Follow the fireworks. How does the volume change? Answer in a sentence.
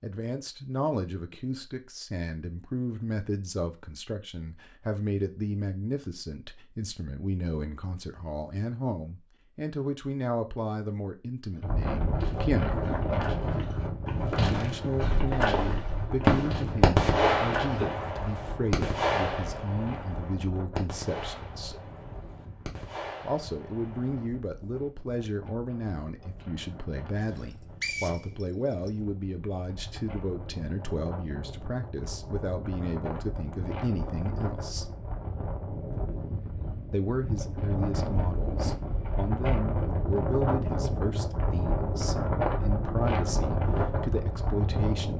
The loudness of the fireworks goes down.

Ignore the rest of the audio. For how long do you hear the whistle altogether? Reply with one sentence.
You can hear the whistle for 2 seconds altogether.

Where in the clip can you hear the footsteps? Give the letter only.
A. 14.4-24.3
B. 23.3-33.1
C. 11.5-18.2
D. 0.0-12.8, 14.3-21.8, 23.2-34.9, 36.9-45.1
C.